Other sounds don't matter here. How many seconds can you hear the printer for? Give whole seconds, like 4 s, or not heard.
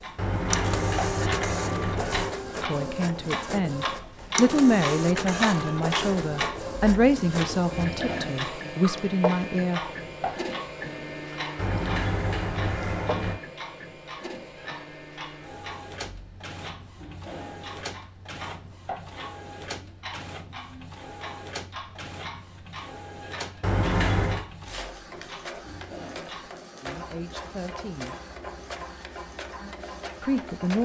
31 s.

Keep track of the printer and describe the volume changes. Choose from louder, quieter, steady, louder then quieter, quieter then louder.
quieter.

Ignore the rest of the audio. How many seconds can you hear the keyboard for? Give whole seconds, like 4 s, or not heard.
not heard.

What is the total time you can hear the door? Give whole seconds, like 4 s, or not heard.
5 s.